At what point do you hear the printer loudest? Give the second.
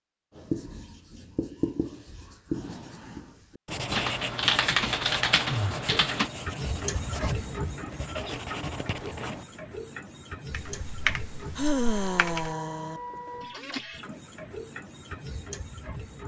7 s.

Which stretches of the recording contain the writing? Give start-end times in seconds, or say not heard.
0.3-9.4.